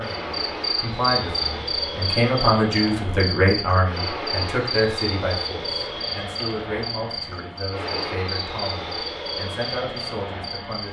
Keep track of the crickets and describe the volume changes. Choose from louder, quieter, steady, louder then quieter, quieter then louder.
quieter.